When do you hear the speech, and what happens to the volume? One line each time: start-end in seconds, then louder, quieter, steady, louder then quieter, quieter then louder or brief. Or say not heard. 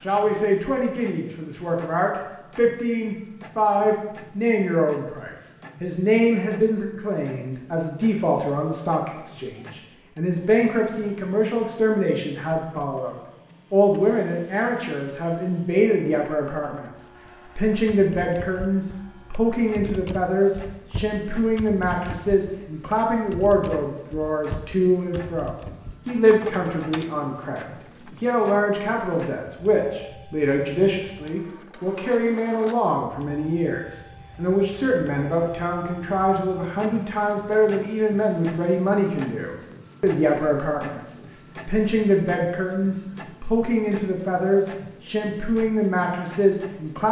0.0-47.0 steady.